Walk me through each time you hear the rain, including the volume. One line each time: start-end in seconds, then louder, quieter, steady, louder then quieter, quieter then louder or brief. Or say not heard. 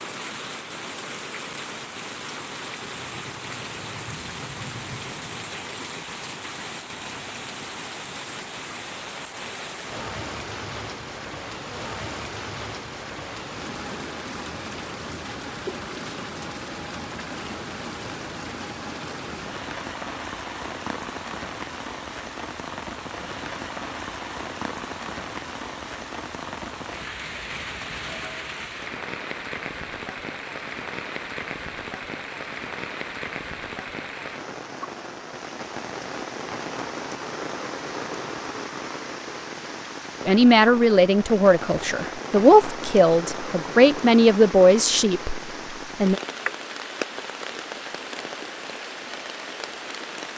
0.0-50.3 steady.